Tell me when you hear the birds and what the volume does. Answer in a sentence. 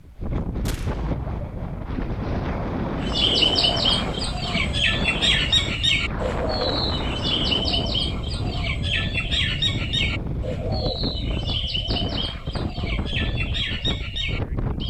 The birds can be heard from 3.0 to 14.8 s, getting quieter.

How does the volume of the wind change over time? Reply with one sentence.
The loudness of the wind stays about the same.